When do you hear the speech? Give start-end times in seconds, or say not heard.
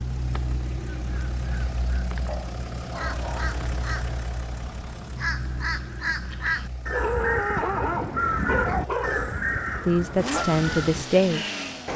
9.8-11.4.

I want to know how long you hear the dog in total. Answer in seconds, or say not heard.
4 s.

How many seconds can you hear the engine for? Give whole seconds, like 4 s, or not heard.
12 s.